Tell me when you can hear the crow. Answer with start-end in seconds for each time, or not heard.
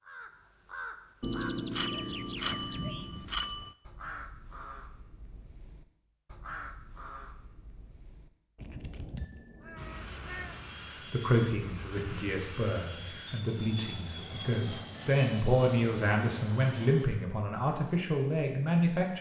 0.1-10.7.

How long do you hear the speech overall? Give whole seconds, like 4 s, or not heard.
8 s.